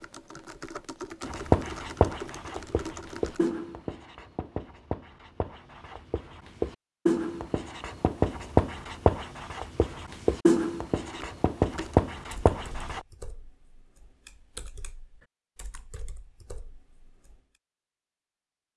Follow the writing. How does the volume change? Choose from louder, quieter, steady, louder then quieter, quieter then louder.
quieter then louder.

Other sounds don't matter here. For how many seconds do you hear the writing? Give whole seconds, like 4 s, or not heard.
12 s.